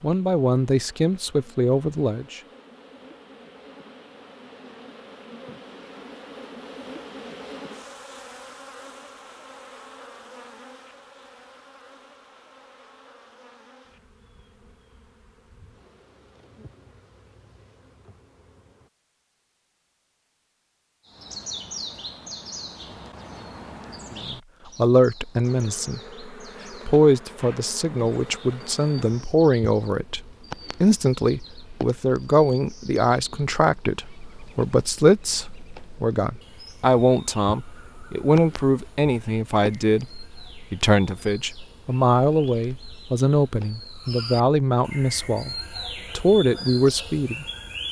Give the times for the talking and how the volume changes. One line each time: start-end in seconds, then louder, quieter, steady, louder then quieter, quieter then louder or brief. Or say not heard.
0.0-2.4 brief
24.1-26.0 brief
26.9-47.8 steady.